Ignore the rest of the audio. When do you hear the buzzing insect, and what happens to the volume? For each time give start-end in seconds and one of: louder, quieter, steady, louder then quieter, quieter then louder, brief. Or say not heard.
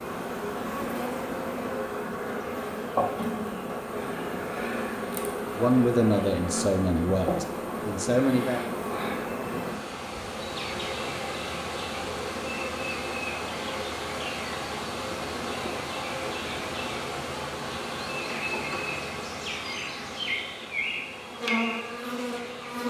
0.0-22.8 steady.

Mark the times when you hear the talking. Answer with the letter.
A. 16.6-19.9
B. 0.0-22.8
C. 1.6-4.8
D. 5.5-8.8
D.